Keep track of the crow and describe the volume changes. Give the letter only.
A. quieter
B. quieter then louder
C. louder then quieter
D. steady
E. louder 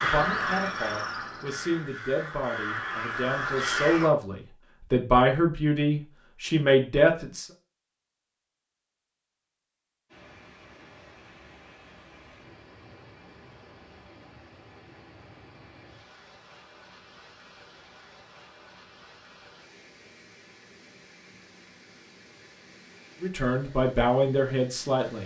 B.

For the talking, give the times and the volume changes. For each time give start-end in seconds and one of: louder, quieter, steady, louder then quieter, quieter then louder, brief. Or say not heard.
0.0-7.5 louder
23.2-25.2 brief.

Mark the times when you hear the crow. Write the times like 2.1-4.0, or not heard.
0.0-4.1.